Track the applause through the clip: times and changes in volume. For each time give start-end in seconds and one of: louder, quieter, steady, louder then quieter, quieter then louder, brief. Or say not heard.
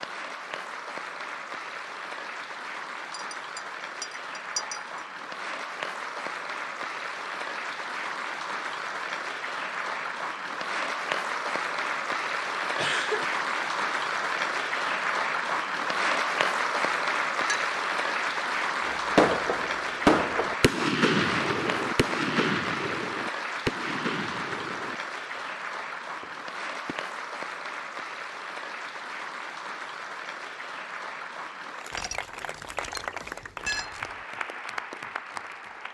0.0-35.8 louder then quieter.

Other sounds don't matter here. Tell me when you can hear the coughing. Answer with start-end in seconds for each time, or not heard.
12.8-13.2.